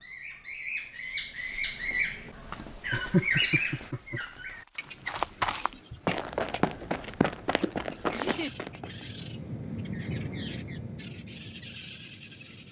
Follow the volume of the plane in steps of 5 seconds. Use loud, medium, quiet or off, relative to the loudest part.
off, loud, loud.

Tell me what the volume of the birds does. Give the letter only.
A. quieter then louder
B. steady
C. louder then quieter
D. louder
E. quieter
E.